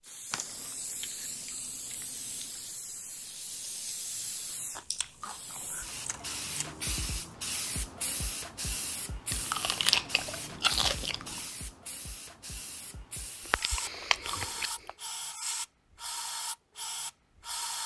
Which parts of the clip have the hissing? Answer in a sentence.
You can hear the hissing from 0.0 to 17.8 s.